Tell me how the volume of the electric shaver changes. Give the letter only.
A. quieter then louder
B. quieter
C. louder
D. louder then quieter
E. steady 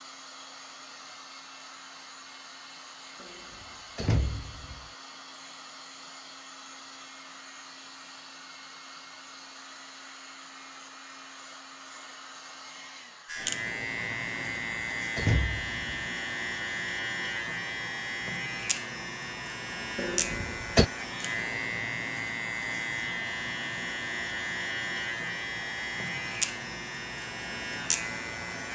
E.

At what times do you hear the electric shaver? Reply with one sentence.
The electric shaver can be heard from 13.2 to 28.7 s.